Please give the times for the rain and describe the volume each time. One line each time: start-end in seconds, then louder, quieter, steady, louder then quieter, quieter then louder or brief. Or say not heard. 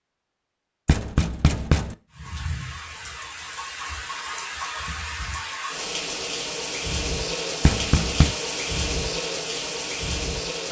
2.1-10.6 louder.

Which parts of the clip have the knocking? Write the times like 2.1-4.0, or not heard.
0.8-1.9, 7.6-8.3.